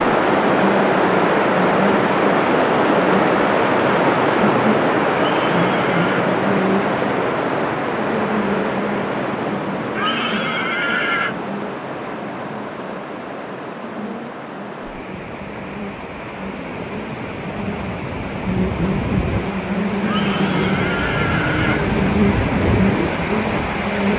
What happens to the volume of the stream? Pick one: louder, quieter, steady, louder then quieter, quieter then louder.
quieter then louder.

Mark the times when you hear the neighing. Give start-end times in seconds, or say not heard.
5.2-6.2, 9.9-11.3, 20.0-21.9.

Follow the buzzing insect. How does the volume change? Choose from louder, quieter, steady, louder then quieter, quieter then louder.
quieter then louder.